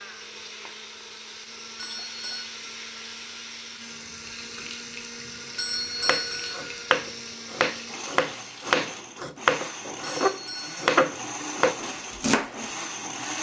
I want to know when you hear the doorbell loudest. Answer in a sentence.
The volume of the doorbell peaks at 6 seconds.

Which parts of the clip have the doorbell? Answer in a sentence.
You can hear the doorbell from 1.8 to 2.5 s, from 5.5 to 6.7 s and from 10.0 to 10.8 s.